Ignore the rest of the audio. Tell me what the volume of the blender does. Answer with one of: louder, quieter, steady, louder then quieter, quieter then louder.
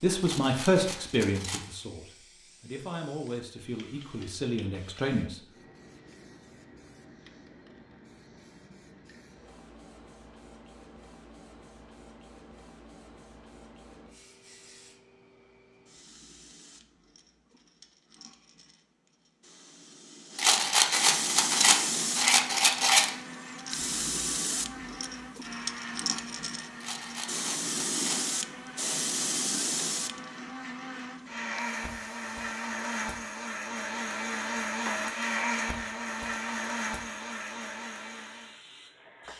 louder.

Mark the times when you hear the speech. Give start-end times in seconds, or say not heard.
0.0-5.4.